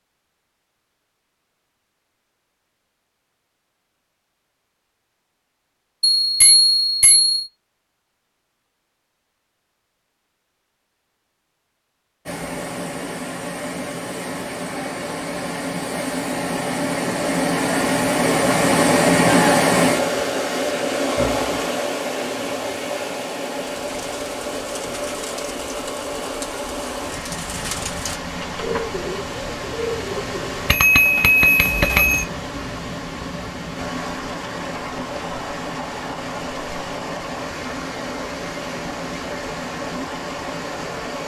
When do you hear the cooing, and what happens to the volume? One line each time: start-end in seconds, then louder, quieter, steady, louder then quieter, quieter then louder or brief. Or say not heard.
23.7-30.5 louder.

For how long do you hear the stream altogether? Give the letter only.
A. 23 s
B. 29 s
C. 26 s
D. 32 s
B.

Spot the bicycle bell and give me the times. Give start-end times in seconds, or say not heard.
6.0-7.5, 30.6-32.2.